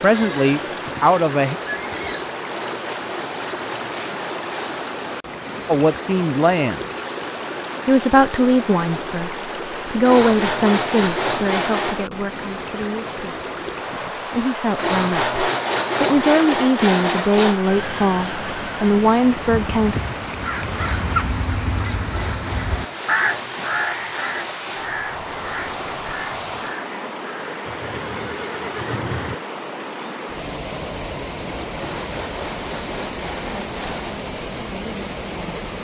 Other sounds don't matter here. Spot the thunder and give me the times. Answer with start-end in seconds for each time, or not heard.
not heard.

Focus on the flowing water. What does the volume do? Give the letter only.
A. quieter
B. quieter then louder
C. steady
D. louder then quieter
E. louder
C.